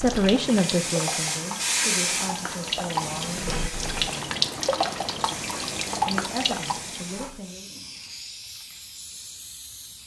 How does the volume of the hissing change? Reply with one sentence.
The volume of the hissing goes down.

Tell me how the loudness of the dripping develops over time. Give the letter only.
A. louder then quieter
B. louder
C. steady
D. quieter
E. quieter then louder
B.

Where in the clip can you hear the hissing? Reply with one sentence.
The hissing can be heard from 0.2 to 10.0 s.